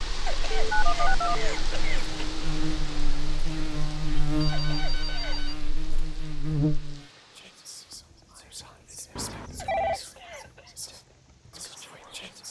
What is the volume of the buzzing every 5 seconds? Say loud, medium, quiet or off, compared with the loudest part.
loud, loud, off.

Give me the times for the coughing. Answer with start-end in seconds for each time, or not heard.
0.2-2.2, 4.5-5.5, 9.6-10.8.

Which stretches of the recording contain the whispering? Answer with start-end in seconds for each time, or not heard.
7.1-12.4.